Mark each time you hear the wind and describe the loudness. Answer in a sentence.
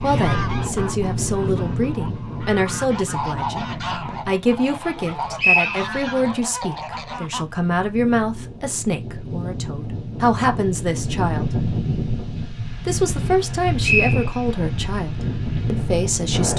The wind can be heard from 0.0 to 16.5 s, getting quieter then louder.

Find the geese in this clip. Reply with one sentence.
You can hear the geese from 0.0 to 7.5 s.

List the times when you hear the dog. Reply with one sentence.
You can't hear the dog here.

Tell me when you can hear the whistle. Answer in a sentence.
The whistle can be heard from 5.3 to 5.8 s and from 13.4 to 14.6 s.